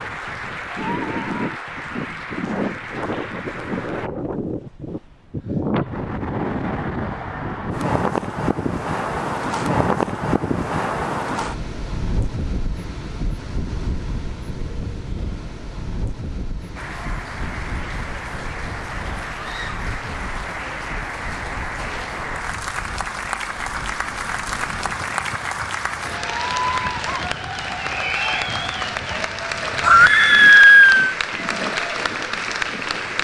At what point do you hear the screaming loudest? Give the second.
31 s.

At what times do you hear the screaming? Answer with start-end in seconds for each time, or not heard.
0.7-1.4, 19.4-19.9, 29.8-31.1.